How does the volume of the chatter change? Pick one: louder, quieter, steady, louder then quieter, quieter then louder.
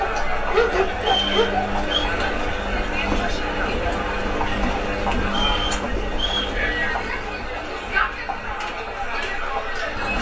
steady.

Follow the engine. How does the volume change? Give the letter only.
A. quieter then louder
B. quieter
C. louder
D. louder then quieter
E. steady
B.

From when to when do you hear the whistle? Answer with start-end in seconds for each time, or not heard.
0.9-2.0, 5.2-6.5.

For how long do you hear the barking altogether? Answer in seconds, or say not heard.
2 s.